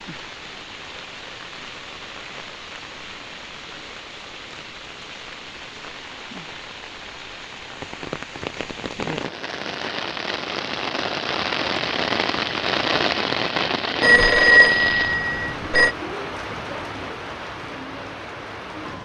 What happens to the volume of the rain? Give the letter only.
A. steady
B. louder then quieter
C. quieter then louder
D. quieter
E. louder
B.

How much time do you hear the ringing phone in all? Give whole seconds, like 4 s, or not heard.
2 s.